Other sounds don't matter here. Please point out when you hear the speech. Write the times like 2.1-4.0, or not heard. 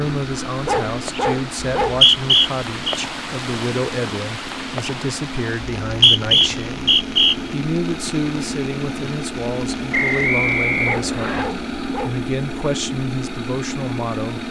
0.0-14.4.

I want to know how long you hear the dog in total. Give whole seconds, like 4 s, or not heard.
3 s.